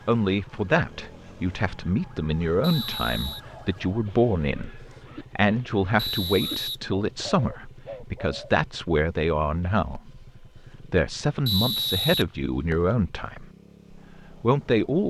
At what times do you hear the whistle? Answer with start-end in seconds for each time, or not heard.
2.6-3.4, 6.0-7.3, 11.4-12.9.